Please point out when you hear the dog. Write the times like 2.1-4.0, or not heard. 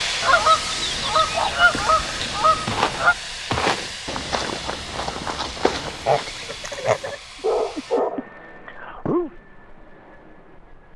7.4-9.3.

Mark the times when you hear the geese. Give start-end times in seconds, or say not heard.
0.2-3.1, 5.7-7.2.